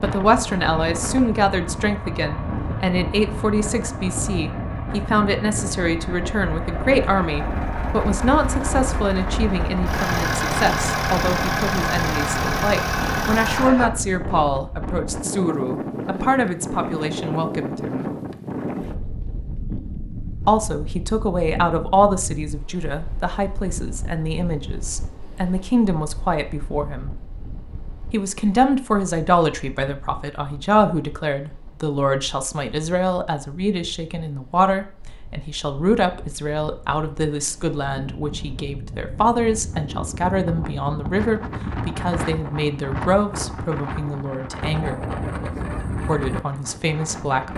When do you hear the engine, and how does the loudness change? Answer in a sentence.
The engine can be heard from 0.0 to 13.9 s, getting louder.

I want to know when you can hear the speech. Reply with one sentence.
You can hear the speech from 0.0 to 18.1 s, from 20.4 to 27.1 s, from 28.1 to 45.0 s and from 46.0 to 47.5 s.